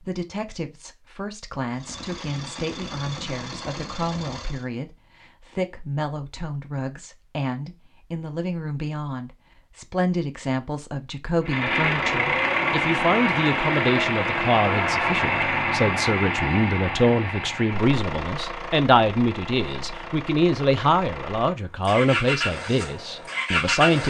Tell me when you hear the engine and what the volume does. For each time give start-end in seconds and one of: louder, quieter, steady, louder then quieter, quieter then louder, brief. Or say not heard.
1.8-4.7 brief
11.4-24.0 quieter then louder.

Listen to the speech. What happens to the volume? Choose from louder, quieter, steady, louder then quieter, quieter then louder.
louder.